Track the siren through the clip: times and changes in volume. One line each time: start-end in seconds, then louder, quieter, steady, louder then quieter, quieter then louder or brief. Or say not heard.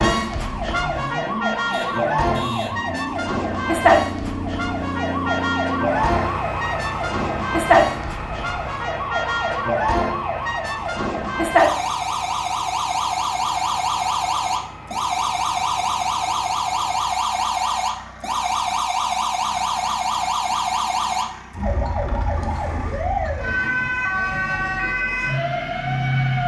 0.0-26.4 steady.